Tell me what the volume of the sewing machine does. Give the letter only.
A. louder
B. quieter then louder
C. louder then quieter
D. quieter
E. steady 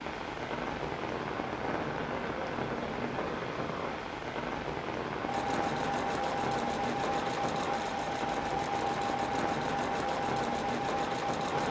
E.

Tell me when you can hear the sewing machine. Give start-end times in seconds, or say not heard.
5.2-11.6.